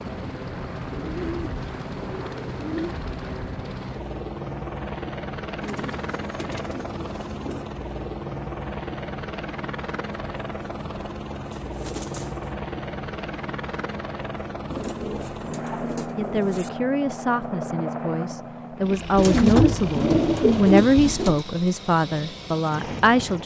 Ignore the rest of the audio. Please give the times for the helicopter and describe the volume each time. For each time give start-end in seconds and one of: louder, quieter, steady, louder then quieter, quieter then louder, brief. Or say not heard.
0.0-23.4 steady.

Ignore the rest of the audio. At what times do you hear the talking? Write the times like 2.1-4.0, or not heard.
16.1-23.4.